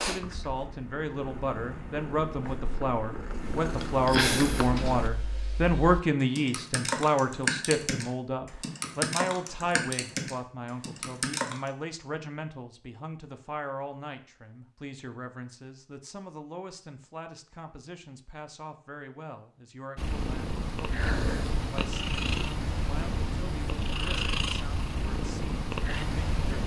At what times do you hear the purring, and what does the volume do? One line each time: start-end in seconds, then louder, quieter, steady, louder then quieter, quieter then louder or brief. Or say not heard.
0.0-5.1 louder
19.9-26.6 steady.